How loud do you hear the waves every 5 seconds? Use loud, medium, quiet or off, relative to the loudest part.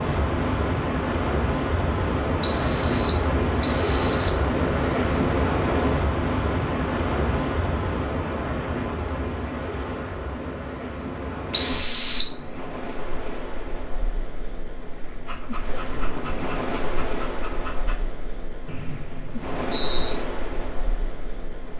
loud, loud, medium, medium, medium.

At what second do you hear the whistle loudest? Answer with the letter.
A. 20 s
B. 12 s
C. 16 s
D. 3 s
B.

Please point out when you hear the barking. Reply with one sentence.
The barking can be heard from 15.2 to 18.0 s.